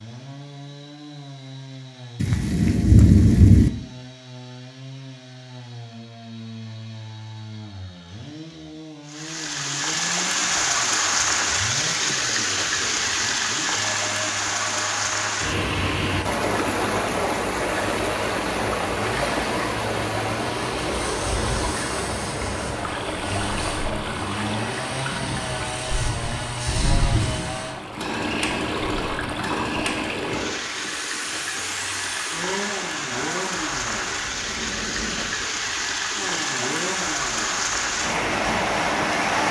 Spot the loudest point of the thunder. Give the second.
3 s.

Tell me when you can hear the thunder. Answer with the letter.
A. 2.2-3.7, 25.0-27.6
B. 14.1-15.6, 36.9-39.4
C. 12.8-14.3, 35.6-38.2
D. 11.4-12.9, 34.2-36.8
A.